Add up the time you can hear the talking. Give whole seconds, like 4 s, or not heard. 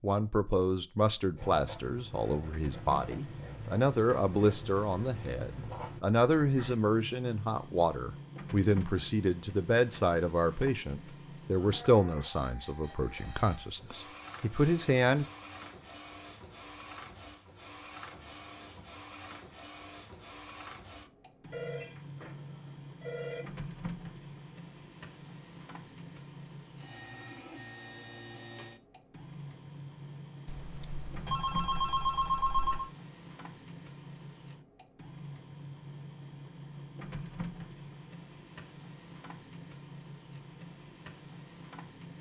15 s.